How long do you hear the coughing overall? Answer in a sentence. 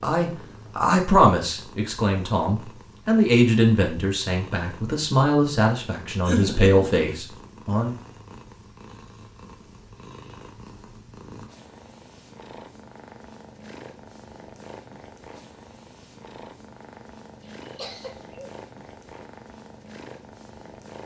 The coughing can be heard for 2 seconds in total.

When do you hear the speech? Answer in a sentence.
The speech can be heard from 0.0 to 8.0 s.